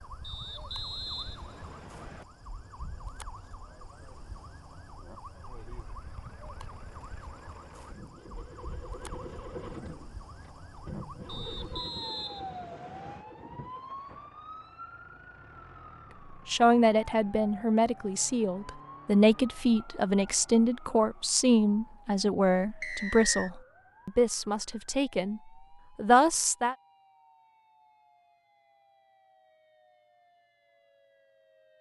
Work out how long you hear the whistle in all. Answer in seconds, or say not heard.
5 s.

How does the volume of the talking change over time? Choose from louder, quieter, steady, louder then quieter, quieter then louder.
steady.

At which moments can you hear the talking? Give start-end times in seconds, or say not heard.
16.3-26.8.